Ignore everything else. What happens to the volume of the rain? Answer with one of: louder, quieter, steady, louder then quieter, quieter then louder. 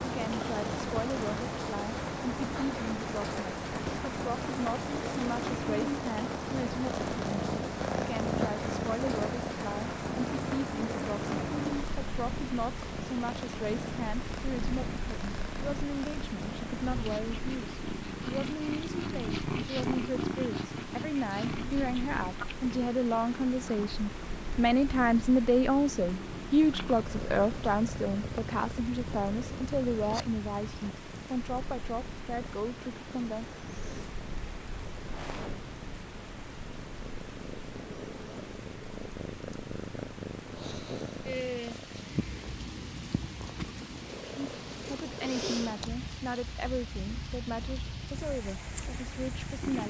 quieter.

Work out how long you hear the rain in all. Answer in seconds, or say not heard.
50 s.